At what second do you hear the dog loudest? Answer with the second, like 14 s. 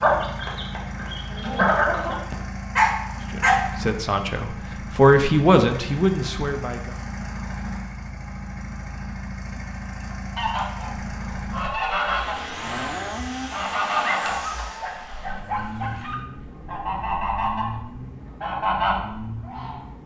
3 s.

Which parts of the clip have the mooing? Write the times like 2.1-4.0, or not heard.
11.9-13.5.